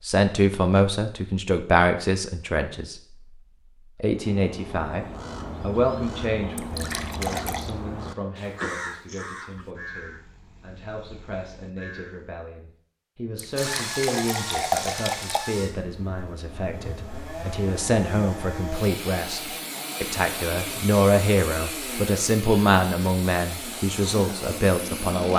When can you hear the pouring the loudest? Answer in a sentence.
The loudest moment of the pouring is at 15 seconds.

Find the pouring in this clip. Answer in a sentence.
You can hear the pouring from 6.5 to 7.7 s and from 13.3 to 15.4 s.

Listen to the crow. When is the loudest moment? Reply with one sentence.
The loudest moment of the crow is at 9 seconds.